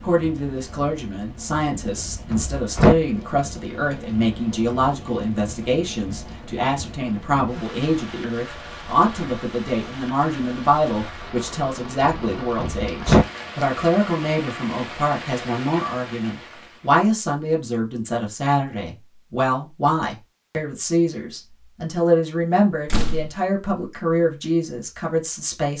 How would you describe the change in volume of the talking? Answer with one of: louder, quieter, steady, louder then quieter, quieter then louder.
steady.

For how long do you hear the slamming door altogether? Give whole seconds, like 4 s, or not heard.
3 s.